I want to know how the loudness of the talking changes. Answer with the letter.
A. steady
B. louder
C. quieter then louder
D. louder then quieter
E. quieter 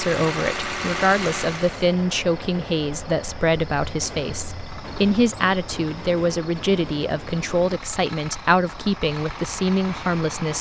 A.